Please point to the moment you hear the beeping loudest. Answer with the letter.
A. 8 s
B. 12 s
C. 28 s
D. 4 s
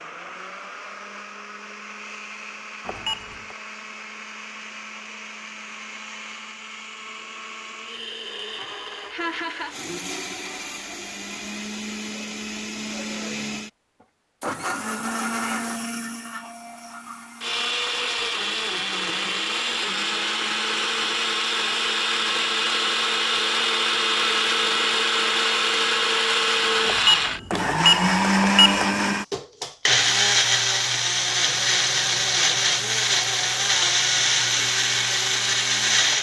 C.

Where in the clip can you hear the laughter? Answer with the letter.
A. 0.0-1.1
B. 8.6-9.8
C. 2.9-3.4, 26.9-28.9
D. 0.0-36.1
B.